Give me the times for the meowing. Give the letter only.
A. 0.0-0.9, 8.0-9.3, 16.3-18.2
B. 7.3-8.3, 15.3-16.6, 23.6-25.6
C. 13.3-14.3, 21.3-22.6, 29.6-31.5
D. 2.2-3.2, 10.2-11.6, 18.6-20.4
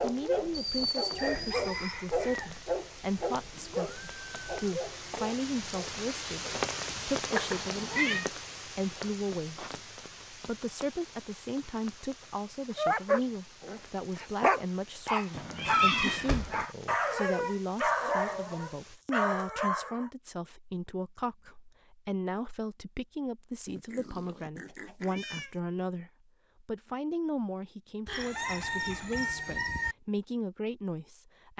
B.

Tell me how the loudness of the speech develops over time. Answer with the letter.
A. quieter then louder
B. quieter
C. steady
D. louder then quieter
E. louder
C.